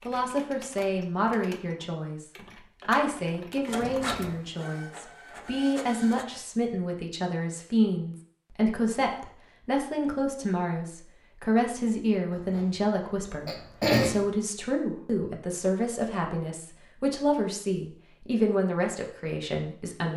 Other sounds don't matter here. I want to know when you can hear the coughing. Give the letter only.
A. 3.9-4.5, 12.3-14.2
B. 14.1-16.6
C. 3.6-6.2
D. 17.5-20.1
A.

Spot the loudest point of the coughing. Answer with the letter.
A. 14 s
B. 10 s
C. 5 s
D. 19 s
A.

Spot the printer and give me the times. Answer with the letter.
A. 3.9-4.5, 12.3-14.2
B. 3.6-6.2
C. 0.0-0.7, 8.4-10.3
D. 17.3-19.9
B.